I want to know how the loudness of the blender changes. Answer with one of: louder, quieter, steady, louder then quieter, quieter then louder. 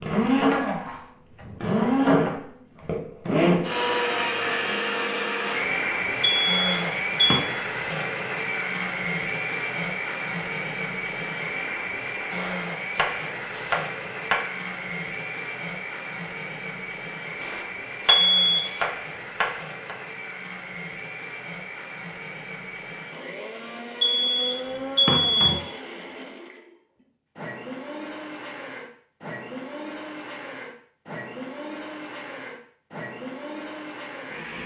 quieter.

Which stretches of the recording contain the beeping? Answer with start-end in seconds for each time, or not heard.
6.2-7.4, 18.1-18.7, 24.0-25.6.